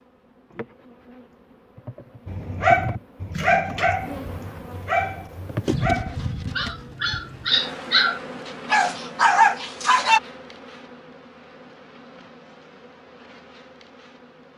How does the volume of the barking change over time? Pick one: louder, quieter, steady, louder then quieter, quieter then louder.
quieter then louder.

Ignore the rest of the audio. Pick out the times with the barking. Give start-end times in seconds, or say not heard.
2.2-10.2.